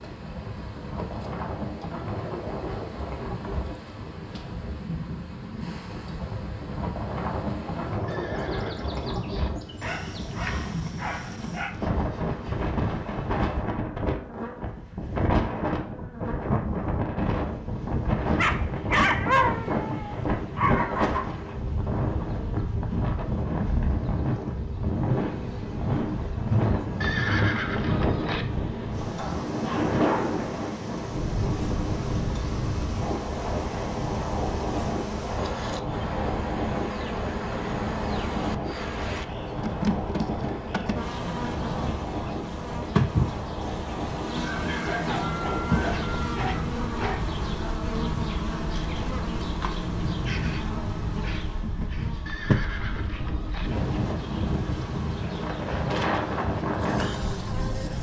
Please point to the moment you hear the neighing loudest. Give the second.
27 s.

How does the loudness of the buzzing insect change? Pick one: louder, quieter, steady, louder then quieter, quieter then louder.
louder.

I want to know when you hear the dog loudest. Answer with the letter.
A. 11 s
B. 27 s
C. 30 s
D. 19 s
D.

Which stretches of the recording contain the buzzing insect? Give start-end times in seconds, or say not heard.
0.0-57.9.